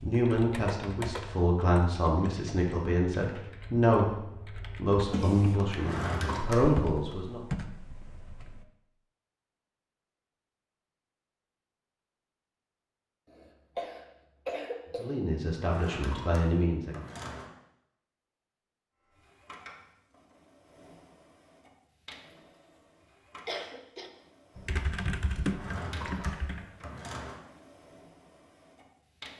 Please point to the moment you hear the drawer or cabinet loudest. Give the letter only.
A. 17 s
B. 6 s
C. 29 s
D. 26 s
B.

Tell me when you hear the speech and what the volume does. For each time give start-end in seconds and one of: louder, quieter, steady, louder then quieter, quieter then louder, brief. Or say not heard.
0.0-4.2 steady
4.8-7.4 brief
14.9-17.0 brief.